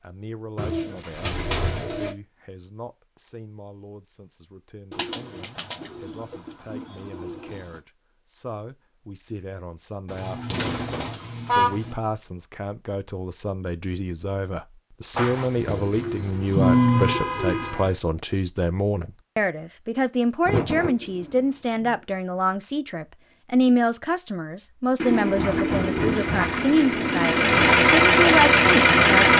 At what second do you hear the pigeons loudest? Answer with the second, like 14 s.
17 s.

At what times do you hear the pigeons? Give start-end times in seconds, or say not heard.
0.6-2.1, 4.9-7.8, 10.1-11.9, 15.2-17.9, 20.4-21.9, 25.0-27.9.